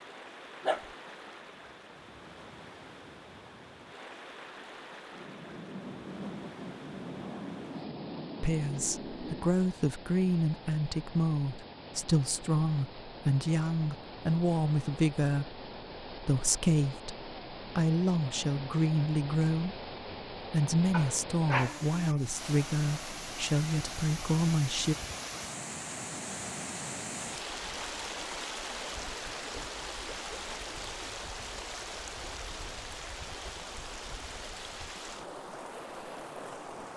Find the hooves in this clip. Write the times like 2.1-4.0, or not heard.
not heard.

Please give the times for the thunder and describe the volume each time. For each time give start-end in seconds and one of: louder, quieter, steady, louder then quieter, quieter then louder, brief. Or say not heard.
5.1-9.5 steady.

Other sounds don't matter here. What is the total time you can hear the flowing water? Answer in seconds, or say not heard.
37 s.